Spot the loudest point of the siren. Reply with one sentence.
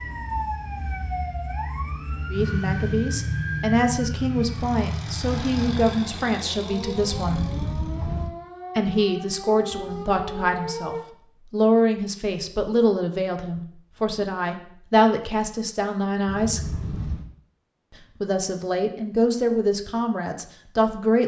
The volume of the siren peaks at 3 seconds.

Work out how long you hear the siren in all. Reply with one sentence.
You can hear the siren for 11 seconds altogether.